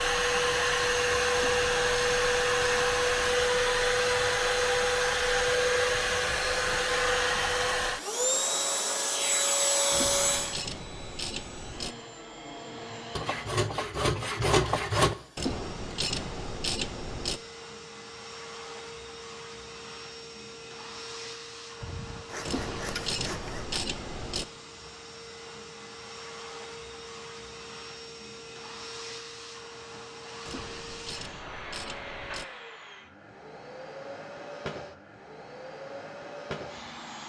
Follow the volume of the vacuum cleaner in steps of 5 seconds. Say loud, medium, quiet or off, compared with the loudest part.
loud, loud, medium, quiet, quiet, quiet, quiet, quiet.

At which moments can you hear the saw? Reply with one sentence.
The saw can be heard from 13.2 to 15.2 s and from 21.8 to 23.8 s.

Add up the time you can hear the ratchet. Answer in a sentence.
You can hear the ratchet for 10 seconds altogether.